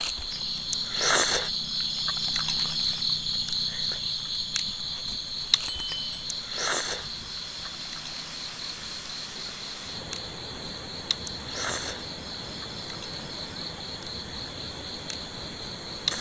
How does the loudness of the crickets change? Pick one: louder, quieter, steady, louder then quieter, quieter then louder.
quieter.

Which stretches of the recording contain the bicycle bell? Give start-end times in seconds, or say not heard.
5.7-6.2.